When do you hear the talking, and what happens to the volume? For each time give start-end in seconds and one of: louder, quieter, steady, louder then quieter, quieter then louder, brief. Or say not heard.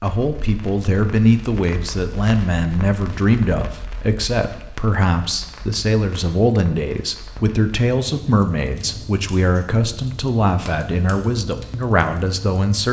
0.0-12.8 steady.